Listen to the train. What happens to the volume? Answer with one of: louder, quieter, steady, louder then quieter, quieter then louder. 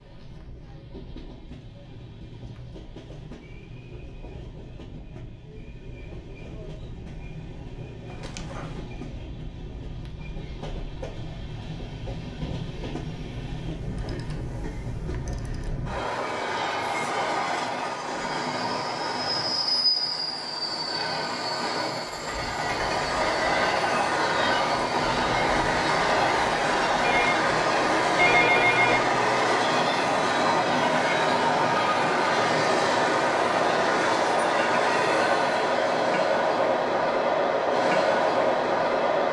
louder.